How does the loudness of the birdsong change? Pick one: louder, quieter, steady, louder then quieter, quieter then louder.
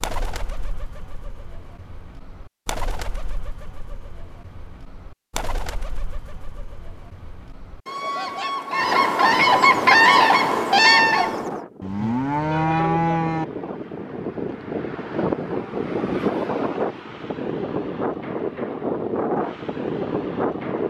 louder.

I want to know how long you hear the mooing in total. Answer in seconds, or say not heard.
2 s.